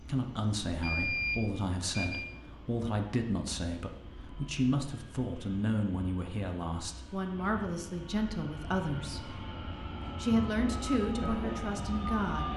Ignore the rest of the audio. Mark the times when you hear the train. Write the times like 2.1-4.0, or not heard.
0.0-12.5.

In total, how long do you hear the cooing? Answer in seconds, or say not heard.
not heard.